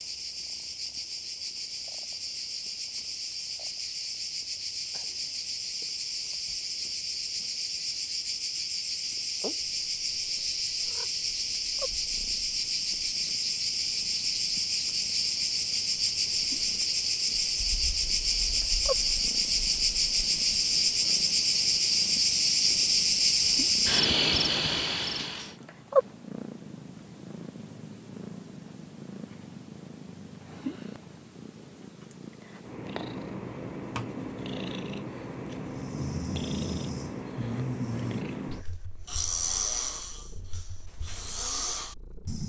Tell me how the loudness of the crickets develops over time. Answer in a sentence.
The volume of the crickets goes up.